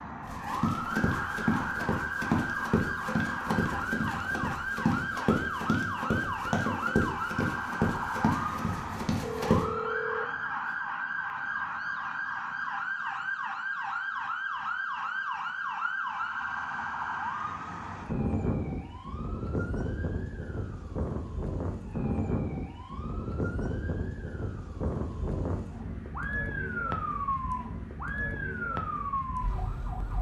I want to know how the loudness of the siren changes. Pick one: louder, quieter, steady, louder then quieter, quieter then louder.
steady.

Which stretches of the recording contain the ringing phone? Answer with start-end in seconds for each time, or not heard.
9.2-10.8.